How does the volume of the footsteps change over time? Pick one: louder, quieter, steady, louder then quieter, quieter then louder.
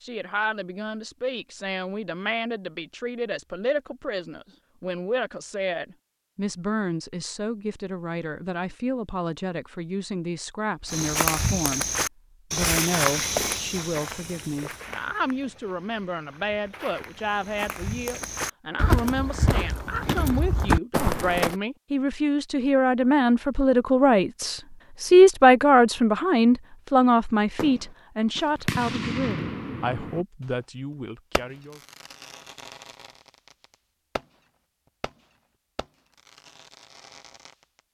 quieter then louder.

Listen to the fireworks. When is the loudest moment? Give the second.
29 s.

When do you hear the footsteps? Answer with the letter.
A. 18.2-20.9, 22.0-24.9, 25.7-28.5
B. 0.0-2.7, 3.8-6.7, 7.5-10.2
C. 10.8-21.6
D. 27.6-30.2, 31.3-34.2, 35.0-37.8
C.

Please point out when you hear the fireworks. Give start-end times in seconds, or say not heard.
27.6-30.2, 31.3-34.2, 35.0-37.8.